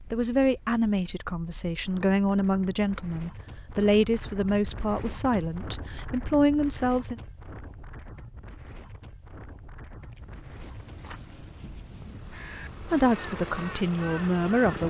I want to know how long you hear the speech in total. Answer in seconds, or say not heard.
9 s.